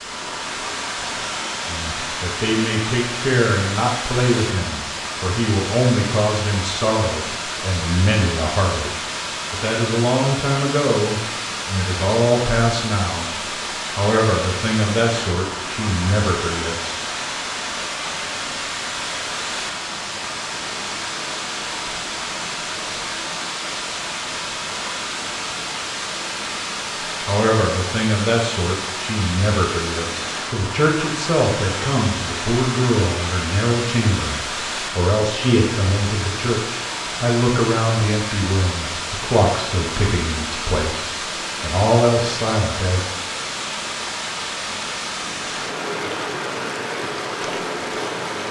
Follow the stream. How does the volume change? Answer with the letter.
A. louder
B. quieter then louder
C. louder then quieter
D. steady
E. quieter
D.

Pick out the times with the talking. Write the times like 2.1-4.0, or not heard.
1.6-13.3, 13.9-16.9, 27.2-43.0.